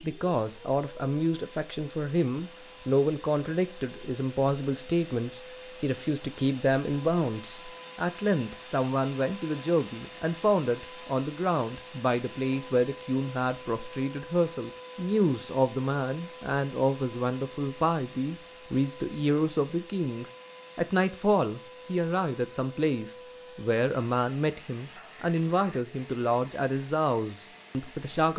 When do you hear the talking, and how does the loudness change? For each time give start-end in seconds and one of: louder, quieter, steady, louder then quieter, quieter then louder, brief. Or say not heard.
0.0-28.3 steady.